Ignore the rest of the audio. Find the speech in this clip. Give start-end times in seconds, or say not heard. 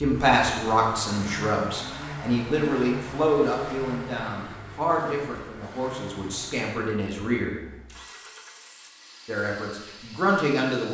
0.0-7.5, 9.2-10.8.